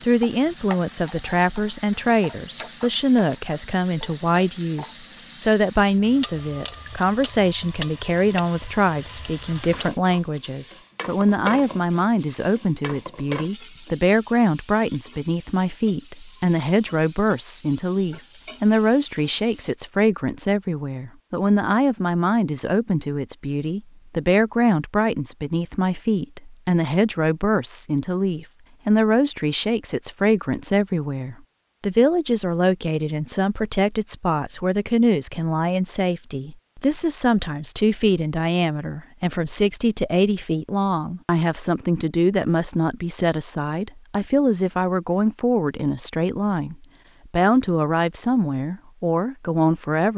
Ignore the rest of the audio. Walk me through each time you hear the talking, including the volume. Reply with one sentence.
You can hear the talking from 0.0 to 50.1 s, at a steady volume.